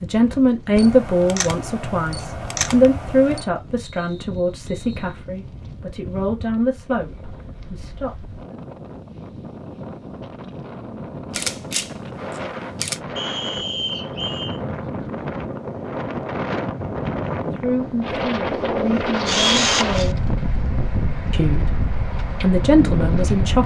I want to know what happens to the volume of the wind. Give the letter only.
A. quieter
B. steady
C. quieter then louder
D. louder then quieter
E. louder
E.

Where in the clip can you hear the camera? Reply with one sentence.
The camera can be heard from 0.8 to 3.5 s, from 11.3 to 13.0 s and from 19.2 to 20.1 s.